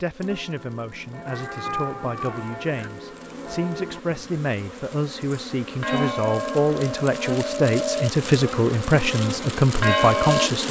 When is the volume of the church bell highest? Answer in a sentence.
The loudest moment of the church bell is at 10 seconds.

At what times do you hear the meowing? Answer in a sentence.
The meowing can be heard from 1.2 to 2.9 s.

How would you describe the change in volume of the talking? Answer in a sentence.
The loudness of the talking goes up.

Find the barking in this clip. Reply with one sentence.
You can't hear the barking here.